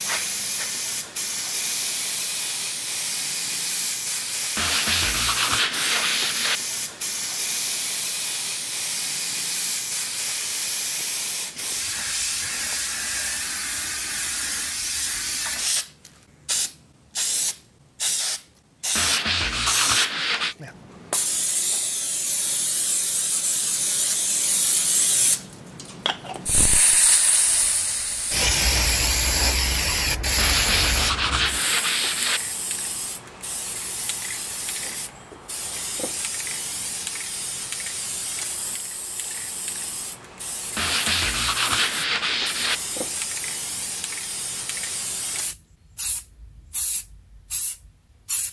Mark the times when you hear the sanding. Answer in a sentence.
You can hear the sanding from 4.5 to 6.6 s, from 18.9 to 20.6 s, from 30.4 to 32.4 s and from 40.8 to 42.8 s.